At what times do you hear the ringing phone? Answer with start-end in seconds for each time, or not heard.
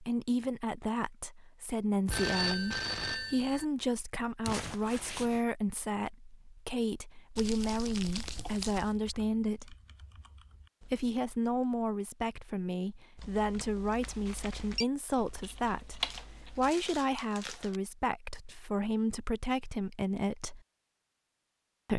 2.0-3.6, 14.0-14.8.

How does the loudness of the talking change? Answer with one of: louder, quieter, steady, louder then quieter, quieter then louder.
steady.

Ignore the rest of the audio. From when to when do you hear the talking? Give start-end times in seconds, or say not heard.
0.0-9.8, 10.8-20.6.